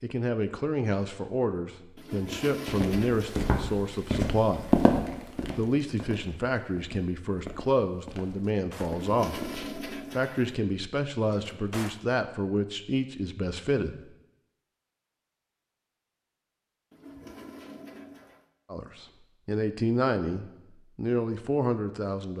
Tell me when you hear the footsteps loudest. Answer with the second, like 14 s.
5 s.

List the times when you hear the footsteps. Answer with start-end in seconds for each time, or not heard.
2.6-10.3.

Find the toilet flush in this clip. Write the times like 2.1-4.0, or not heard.
1.9-3.5, 8.8-10.6, 16.9-18.5.